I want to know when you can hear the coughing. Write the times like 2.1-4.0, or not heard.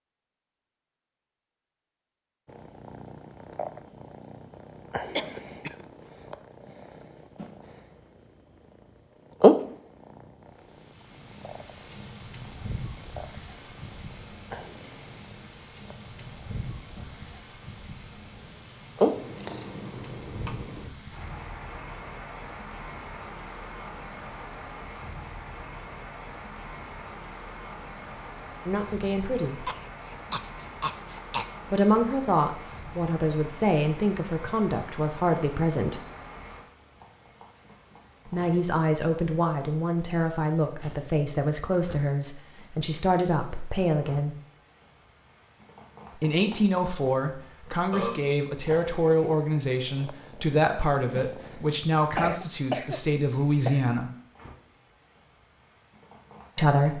5.2-5.8, 29.6-31.6, 52.1-53.9.